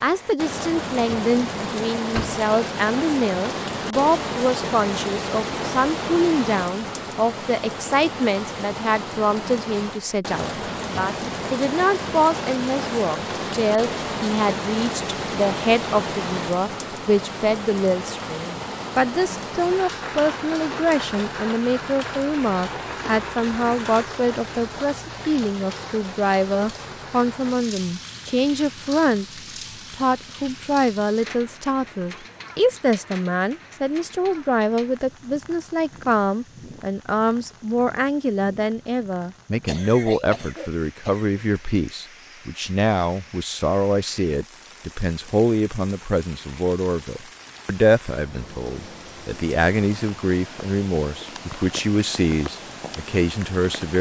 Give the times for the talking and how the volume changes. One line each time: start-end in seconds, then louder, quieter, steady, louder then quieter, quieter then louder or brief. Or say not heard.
0.0-29.2 steady
29.9-53.9 steady.